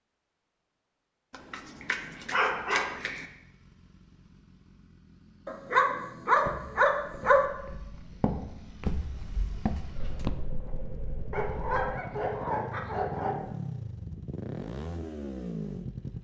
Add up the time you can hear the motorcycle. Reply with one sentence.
You can hear the motorcycle for 14 seconds altogether.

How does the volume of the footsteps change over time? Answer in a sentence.
The volume of the footsteps goes up.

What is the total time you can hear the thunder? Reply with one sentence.
The thunder can be heard for 2 seconds in total.